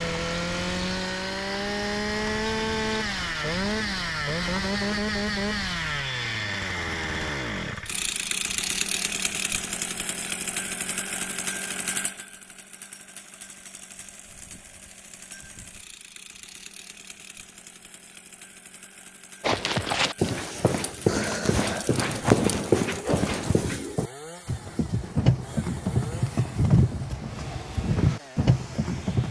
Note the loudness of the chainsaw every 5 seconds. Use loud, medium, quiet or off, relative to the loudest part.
loud, loud, medium, quiet, quiet, quiet.